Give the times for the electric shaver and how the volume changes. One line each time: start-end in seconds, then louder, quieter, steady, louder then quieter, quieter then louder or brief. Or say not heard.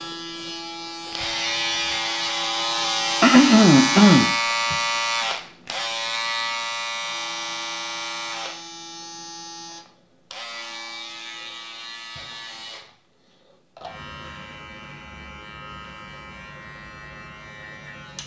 0.0-18.2 quieter.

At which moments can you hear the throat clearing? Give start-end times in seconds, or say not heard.
3.2-4.8.